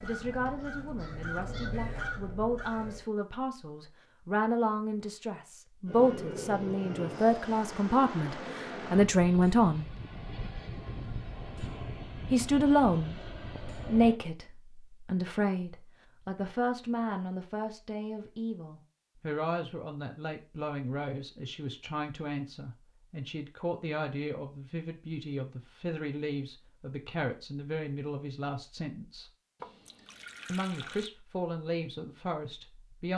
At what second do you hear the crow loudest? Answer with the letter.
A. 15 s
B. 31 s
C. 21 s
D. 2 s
D.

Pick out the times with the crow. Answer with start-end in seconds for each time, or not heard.
0.0-3.0.